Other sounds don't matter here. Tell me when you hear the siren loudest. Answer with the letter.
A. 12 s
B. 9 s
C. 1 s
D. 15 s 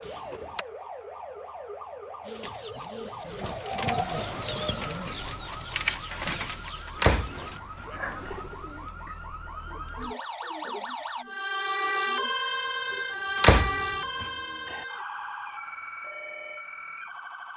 A.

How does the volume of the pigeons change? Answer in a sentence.
The volume of the pigeons goes down.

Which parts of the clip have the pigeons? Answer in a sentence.
You can hear the pigeons from 2.2 to 13.6 s.